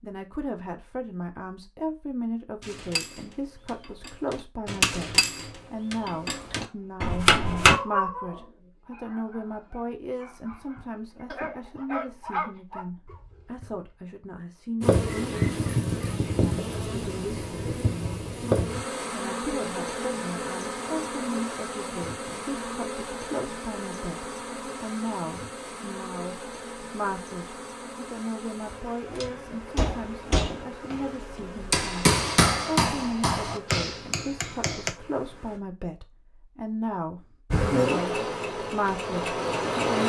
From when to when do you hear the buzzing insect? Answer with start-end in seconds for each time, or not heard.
14.8-35.6, 37.5-40.0.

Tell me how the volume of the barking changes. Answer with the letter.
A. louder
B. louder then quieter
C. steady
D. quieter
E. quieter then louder
E.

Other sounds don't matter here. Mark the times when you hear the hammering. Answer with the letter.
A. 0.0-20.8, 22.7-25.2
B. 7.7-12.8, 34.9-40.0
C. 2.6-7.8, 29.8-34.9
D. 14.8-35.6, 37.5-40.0
C.